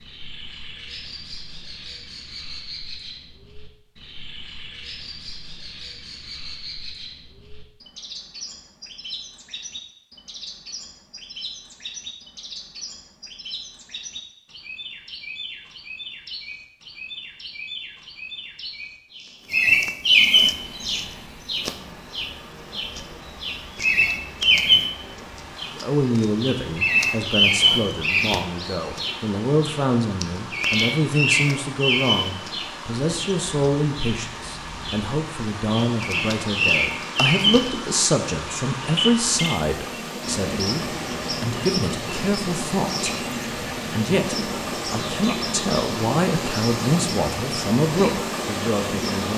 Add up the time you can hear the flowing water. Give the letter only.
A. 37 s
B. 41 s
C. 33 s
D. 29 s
D.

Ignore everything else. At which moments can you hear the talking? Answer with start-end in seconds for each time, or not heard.
25.8-43.1, 43.9-49.3.